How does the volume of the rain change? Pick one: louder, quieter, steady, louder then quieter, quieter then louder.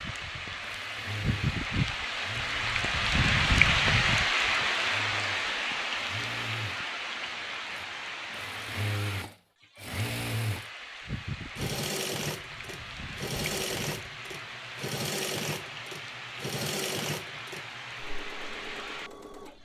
quieter.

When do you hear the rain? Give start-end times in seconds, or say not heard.
0.0-19.6.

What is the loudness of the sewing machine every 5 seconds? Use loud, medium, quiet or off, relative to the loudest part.
medium, medium, loud, loud.